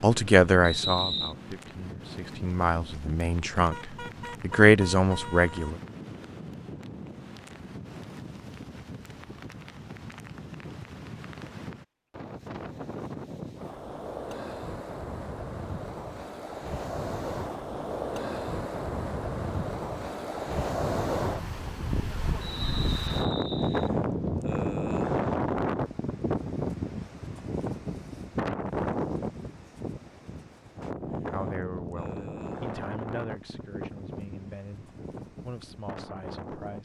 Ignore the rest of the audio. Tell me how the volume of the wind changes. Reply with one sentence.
The loudness of the wind goes up, then down.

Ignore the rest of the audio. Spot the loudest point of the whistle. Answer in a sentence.
The loudest moment of the whistle is at 1 second.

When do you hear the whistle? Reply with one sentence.
The whistle can be heard from 0.6 to 1.4 s and from 22.4 to 23.9 s.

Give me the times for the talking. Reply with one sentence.
You can hear the talking from 0.0 to 5.8 s and from 31.3 to 36.8 s.